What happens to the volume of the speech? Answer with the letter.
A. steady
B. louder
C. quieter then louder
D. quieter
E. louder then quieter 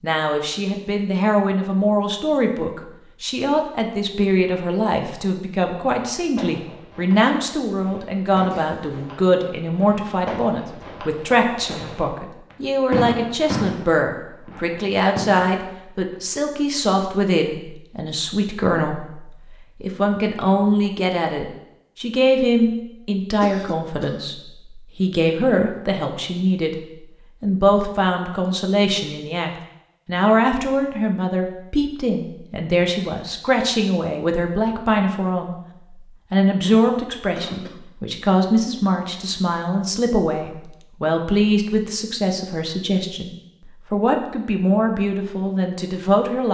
A.